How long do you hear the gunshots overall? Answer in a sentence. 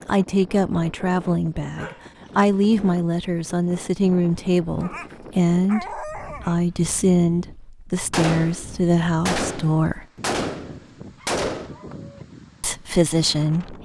You can hear the gunshots for 4 seconds altogether.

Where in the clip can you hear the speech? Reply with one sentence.
You can hear the speech from 0.1 to 10.1 s and from 12.6 to 13.8 s.